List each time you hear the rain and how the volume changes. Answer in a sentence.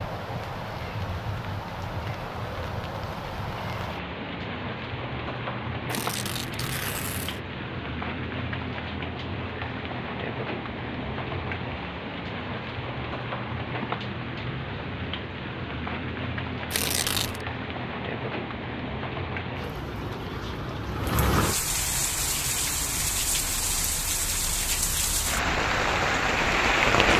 You can hear the rain from 0.0 to 27.1 s, getting louder.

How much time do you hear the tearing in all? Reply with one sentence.
The tearing can be heard for 2 seconds in total.